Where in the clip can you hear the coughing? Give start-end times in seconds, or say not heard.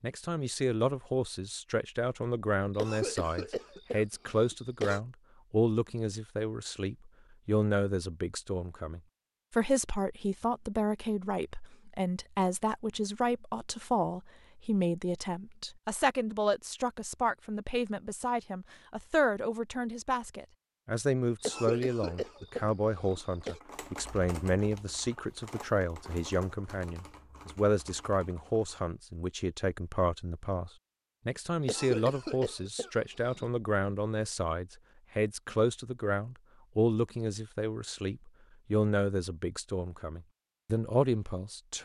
2.8-5.0, 21.4-23.6, 31.6-33.5.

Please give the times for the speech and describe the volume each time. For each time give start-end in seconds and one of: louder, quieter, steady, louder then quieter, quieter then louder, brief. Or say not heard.
0.0-41.7 steady.